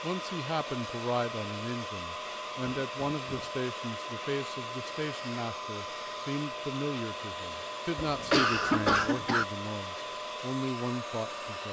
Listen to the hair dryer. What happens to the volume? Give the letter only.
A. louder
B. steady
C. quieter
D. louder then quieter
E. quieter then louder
B.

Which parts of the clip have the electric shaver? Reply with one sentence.
The electric shaver can't be heard in this clip.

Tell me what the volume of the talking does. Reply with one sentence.
The volume of the talking stays about the same.